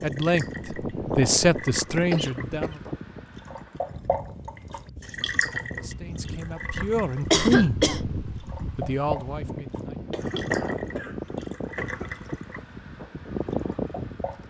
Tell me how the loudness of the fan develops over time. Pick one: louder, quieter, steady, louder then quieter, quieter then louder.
quieter then louder.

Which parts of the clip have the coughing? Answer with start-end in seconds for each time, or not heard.
2.1-2.8, 7.3-8.0, 10.1-12.2.